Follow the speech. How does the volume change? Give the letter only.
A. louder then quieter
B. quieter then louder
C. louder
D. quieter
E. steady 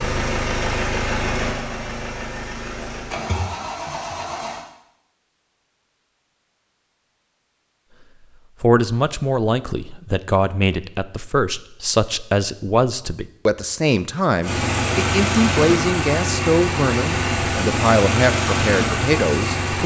E.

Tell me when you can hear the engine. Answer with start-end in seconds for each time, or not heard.
0.0-4.6, 14.4-19.8.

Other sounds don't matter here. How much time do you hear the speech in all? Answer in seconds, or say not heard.
11 s.